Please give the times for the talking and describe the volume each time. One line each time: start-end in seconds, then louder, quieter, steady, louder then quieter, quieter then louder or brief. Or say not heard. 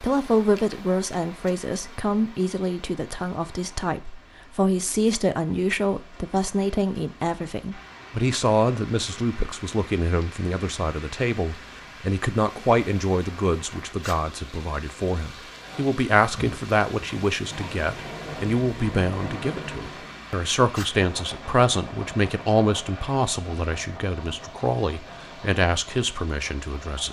0.0-27.0 steady.